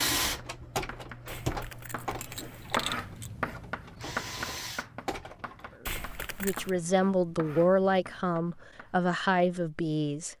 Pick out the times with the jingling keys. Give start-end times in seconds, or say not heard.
1.2-3.3, 5.8-6.8.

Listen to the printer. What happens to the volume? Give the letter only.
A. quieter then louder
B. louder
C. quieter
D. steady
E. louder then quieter
A.